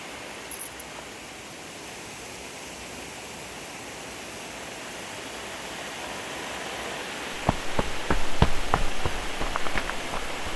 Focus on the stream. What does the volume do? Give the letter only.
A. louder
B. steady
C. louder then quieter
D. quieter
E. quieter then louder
B.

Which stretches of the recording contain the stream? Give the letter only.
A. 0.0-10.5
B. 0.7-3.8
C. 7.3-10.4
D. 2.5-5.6
A.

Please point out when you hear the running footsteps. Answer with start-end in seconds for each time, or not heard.
7.3-10.4.